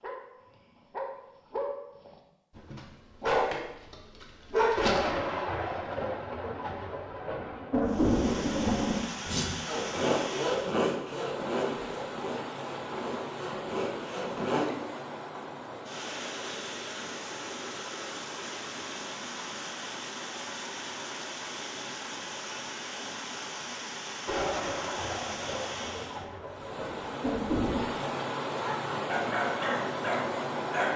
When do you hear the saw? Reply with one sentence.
You can hear the saw from 9.2 to 14.7 s.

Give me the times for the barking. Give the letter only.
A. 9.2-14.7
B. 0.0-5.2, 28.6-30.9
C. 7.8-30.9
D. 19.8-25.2
B.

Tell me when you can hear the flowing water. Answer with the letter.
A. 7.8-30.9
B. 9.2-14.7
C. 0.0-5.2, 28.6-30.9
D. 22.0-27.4
A.